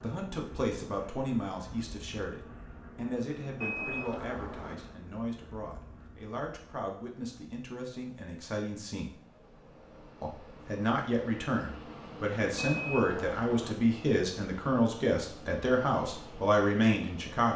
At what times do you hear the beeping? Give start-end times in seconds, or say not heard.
3.6-4.8, 12.6-13.8.